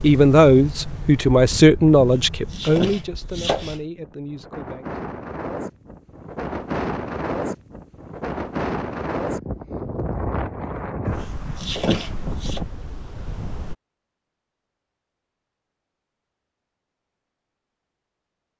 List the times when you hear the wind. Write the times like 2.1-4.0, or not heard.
0.0-13.8.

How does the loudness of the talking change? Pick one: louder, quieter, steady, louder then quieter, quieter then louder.
quieter.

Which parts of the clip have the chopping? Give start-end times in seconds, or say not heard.
1.9-3.8, 11.1-12.6.